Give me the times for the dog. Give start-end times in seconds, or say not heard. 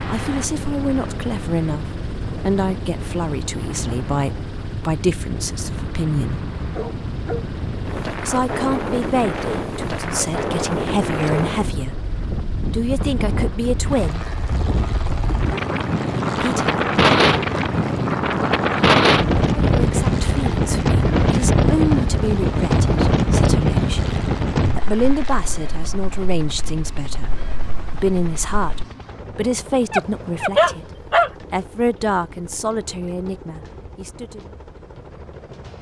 6.8-7.5, 29.9-31.3.